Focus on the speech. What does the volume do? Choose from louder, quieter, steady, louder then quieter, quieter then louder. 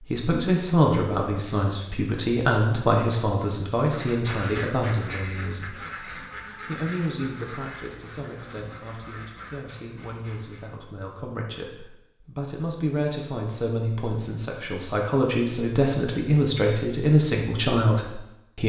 quieter then louder.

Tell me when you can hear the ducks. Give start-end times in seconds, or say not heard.
3.8-10.8.